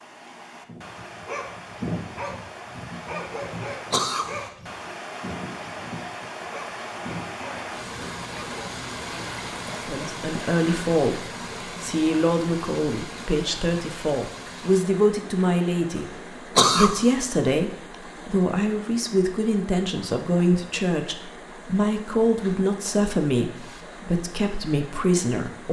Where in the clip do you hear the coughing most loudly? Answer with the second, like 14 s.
17 s.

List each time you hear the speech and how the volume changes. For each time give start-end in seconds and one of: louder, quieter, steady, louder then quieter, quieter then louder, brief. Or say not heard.
9.7-11.2 brief
11.8-25.6 steady.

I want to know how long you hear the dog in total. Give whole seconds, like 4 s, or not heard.
8 s.